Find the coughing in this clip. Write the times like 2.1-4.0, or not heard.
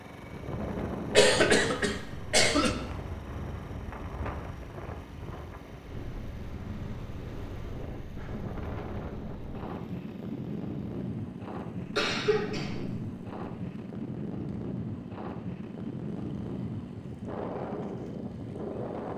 1.1-2.8, 11.8-13.2.